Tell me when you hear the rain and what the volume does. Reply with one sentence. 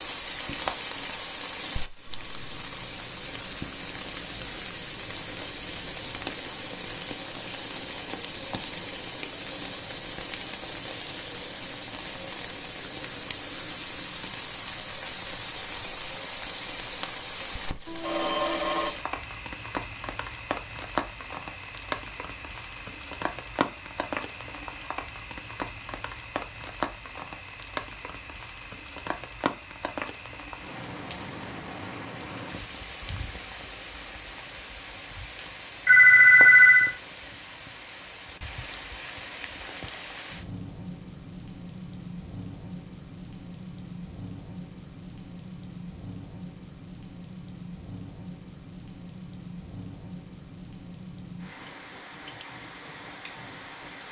You can hear the rain from 0.0 to 54.0 s, getting quieter.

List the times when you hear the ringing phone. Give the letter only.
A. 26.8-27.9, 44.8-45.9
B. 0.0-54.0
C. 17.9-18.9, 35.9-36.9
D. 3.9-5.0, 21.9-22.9
C.